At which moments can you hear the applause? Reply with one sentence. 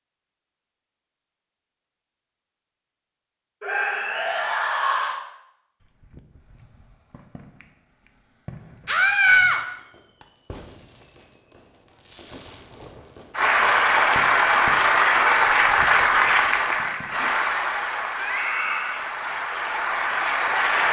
You can hear the applause from 13.3 to 20.8 s.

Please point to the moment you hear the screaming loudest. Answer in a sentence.
The volume of the screaming peaks at 9 seconds.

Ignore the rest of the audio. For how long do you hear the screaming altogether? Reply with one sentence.
You can hear the screaming for 3 seconds altogether.